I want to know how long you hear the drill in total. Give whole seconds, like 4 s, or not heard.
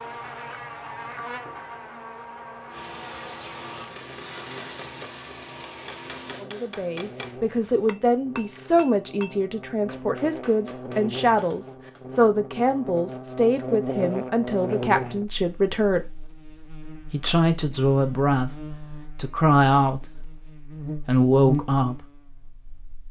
4 s.